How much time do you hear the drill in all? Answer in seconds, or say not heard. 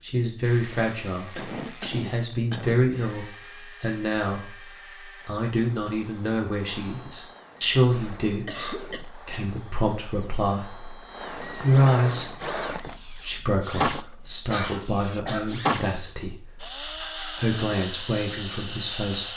19 s.